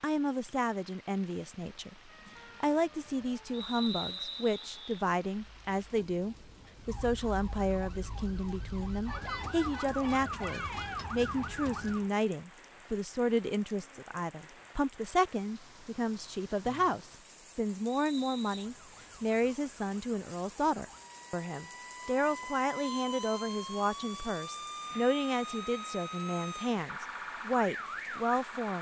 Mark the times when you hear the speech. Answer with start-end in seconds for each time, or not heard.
0.0-1.9, 2.6-28.7.